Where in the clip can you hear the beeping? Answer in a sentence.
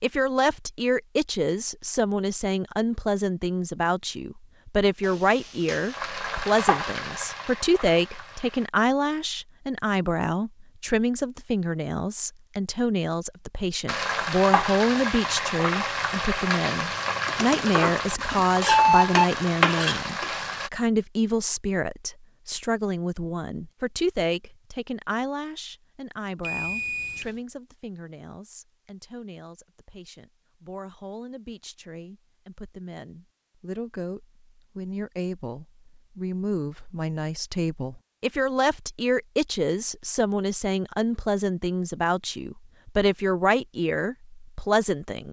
The beeping can be heard from 17.2 to 19.2 s and from 26.4 to 27.4 s.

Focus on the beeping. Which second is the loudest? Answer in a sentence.
The volume of the beeping peaks at 19 seconds.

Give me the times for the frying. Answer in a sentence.
You can hear the frying from 5.0 to 8.7 s and from 13.8 to 20.7 s.